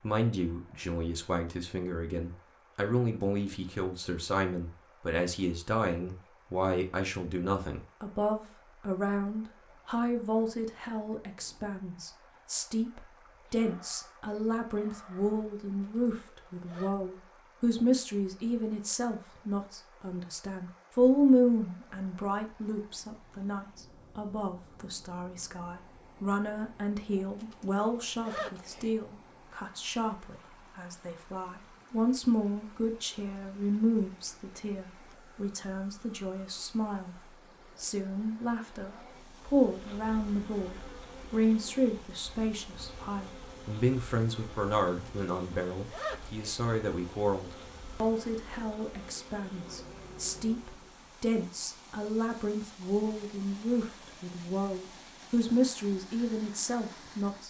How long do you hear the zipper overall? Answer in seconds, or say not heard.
4 s.